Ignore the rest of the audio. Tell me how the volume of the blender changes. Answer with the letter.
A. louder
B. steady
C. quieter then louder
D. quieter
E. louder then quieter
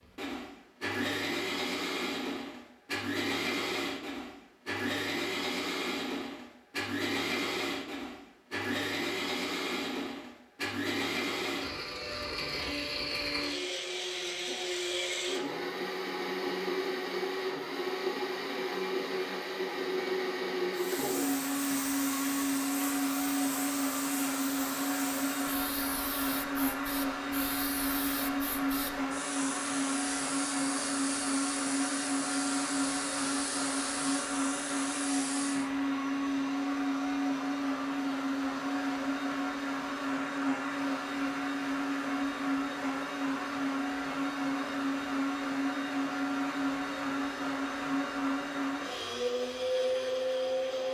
B.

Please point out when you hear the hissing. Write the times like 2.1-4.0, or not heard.
20.7-35.7.